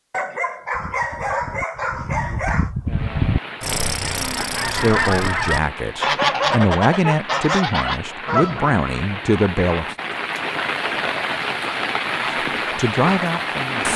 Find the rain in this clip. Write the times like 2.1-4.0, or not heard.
2.9-13.9.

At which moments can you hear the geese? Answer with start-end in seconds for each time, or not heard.
0.7-8.8.